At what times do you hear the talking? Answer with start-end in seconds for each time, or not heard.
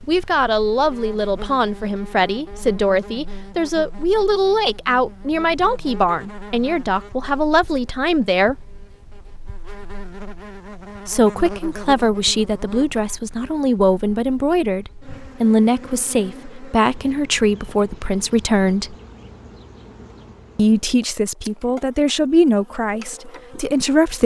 0.1-8.6, 11.1-18.9, 20.6-24.2.